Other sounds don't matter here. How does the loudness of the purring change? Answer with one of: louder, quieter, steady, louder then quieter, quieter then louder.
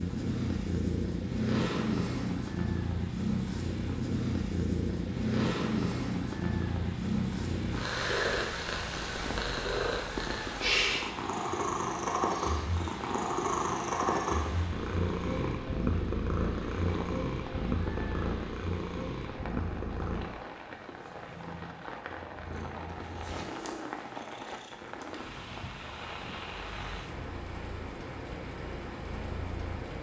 quieter.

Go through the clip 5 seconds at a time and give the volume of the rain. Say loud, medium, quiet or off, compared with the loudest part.
medium, loud, loud, loud, loud, loud.